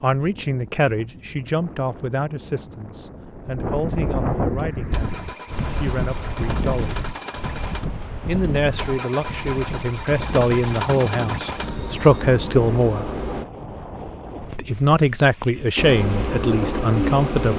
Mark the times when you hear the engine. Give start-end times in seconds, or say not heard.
4.7-13.4, 15.8-17.5.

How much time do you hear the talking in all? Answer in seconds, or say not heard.
15 s.